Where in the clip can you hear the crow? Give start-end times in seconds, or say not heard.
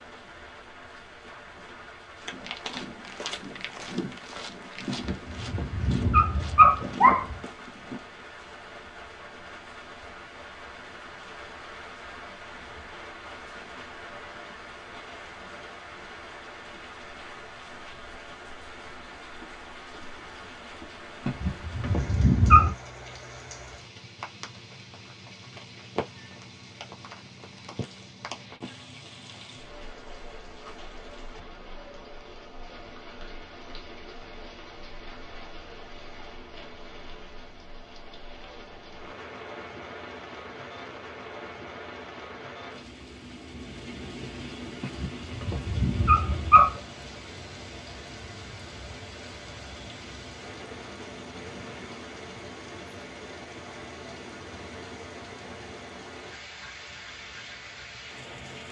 not heard.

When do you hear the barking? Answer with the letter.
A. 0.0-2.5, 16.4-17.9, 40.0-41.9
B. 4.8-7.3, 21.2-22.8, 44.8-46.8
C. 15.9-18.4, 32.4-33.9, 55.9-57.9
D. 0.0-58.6
B.